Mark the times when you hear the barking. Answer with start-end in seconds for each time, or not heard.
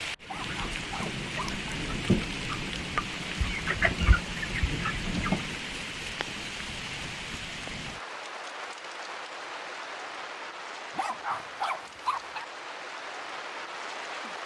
0.2-1.6, 10.9-12.4.